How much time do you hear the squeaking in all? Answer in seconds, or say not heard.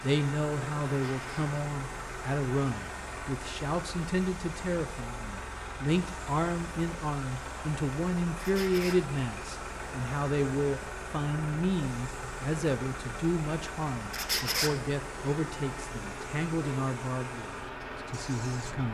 2 s.